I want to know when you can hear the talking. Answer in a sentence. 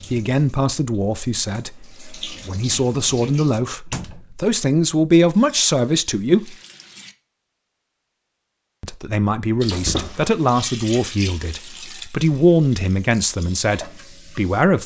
The talking can be heard from 0.1 to 6.5 s and from 8.8 to 14.8 s.